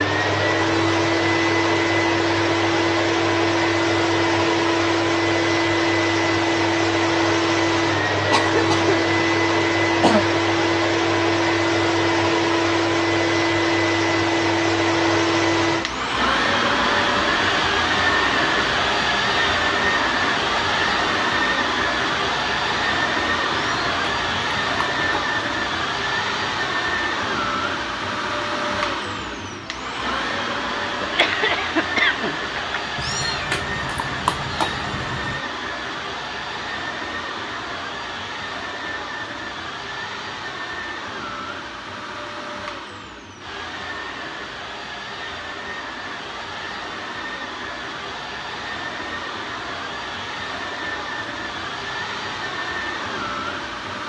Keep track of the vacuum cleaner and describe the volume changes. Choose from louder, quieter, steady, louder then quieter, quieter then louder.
quieter.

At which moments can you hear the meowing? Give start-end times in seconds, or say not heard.
23.5-25.1, 33.0-35.4.